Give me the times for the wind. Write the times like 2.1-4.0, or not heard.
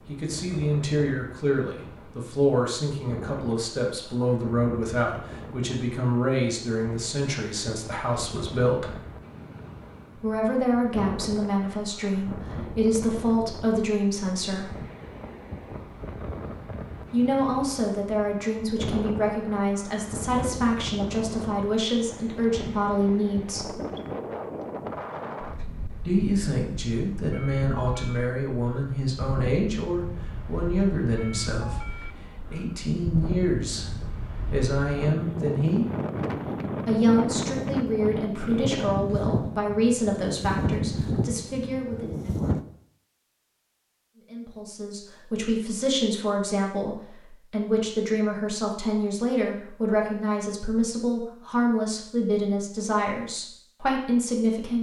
0.0-42.6.